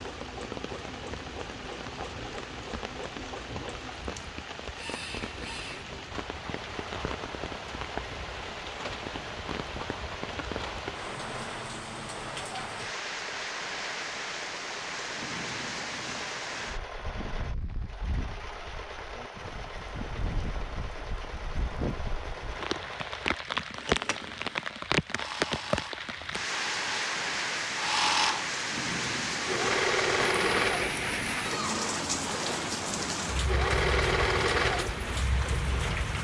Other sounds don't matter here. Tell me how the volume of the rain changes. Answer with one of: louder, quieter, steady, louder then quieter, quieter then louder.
louder.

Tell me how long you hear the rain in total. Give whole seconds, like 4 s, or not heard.
36 s.